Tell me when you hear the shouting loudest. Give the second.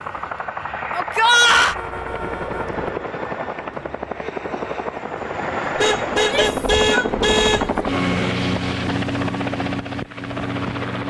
1 s.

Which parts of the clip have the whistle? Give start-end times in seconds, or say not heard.
not heard.